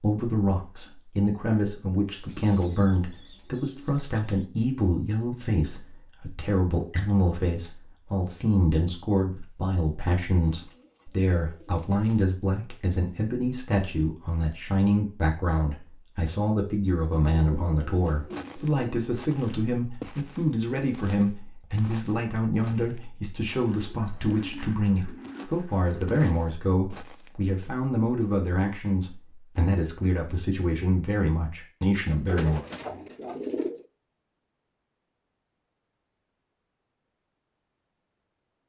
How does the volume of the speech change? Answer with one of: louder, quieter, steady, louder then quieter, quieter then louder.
steady.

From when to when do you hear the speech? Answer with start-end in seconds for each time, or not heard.
0.0-32.6.